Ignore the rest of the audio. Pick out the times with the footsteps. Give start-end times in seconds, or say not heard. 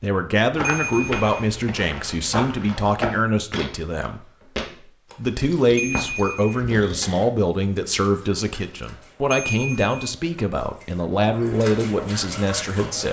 0.6-6.8.